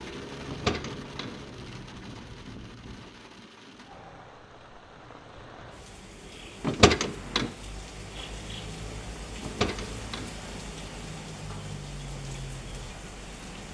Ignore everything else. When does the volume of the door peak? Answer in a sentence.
The loudest moment of the door is at 7 seconds.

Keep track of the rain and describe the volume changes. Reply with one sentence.
The loudness of the rain goes down, then up.